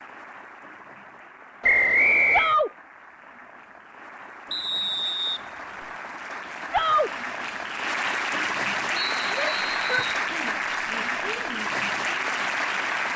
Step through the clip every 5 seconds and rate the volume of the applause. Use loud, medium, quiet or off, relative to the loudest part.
quiet, loud, loud.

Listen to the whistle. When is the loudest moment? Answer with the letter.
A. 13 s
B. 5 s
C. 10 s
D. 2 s
D.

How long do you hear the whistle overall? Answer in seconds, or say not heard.
4 s.